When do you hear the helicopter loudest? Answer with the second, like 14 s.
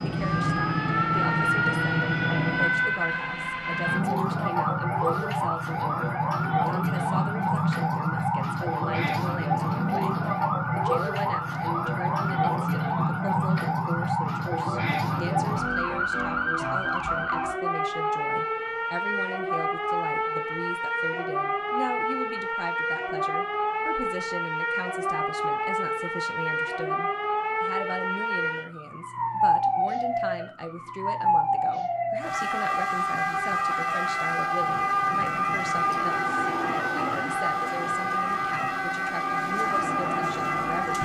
2 s.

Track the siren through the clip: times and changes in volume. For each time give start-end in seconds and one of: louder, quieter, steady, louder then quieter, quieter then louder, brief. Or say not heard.
0.0-41.0 steady.